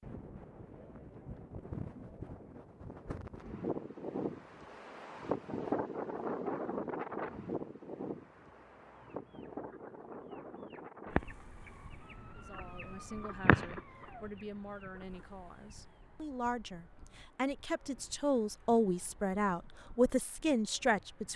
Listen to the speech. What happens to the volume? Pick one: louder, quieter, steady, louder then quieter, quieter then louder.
louder.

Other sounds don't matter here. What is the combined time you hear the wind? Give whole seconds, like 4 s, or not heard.
21 s.